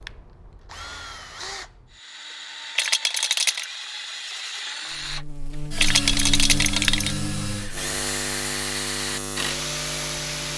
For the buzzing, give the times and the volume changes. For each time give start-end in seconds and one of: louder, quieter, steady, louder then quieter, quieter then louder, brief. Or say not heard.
4.9-10.5 steady.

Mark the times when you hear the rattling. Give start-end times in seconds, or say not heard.
2.8-3.6, 5.8-7.2.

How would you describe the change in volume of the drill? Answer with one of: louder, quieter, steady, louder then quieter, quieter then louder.
louder.